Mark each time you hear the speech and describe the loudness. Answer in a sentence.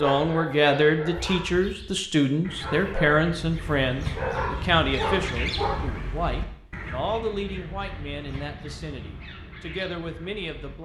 The speech can be heard from 0.0 to 10.7 s, getting quieter.